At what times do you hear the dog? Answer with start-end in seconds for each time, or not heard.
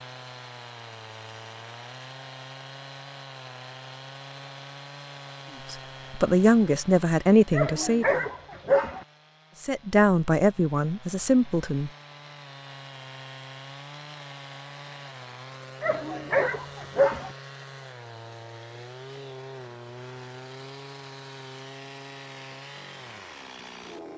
7.5-9.1, 15.8-17.3.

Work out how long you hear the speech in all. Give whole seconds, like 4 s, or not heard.
5 s.